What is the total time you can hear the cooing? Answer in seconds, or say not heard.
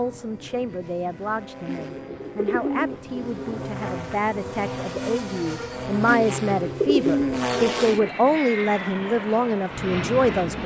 4 s.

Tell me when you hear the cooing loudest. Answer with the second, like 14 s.
7 s.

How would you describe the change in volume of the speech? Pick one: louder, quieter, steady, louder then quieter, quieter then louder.
louder.